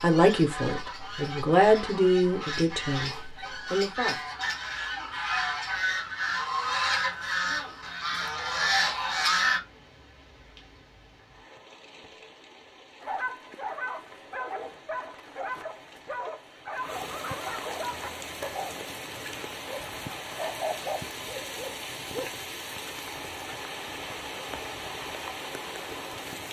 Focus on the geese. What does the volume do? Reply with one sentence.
The volume of the geese goes up.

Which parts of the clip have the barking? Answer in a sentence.
The barking can be heard from 13.0 to 22.4 s.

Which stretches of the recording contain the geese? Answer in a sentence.
The geese can be heard from 0.0 to 9.6 s.